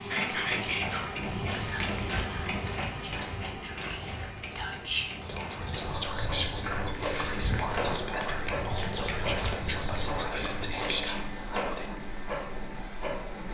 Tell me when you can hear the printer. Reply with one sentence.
You can hear the printer from 0.0 to 13.4 s.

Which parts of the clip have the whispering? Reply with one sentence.
You can hear the whispering from 0.0 to 11.9 s.